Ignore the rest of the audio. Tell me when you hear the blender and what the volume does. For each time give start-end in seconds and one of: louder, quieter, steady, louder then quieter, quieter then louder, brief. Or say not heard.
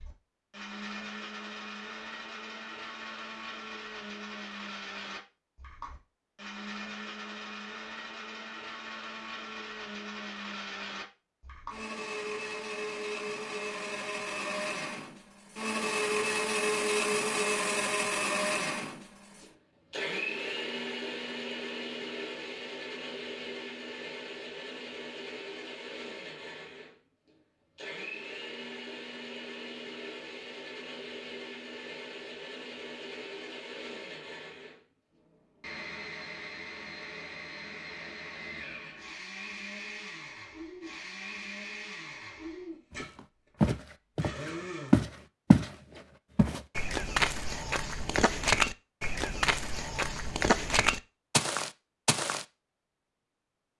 0.0-45.1 louder then quieter.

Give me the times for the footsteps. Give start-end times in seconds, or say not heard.
43.0-52.5.